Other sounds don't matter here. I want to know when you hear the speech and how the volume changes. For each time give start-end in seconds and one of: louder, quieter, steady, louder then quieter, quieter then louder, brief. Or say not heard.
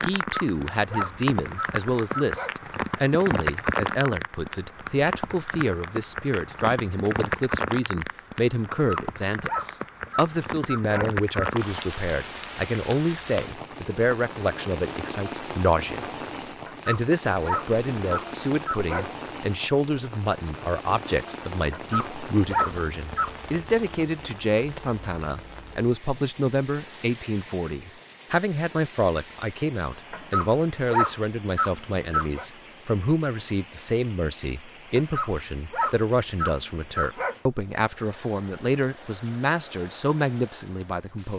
0.0-16.1 steady
16.9-41.3 steady.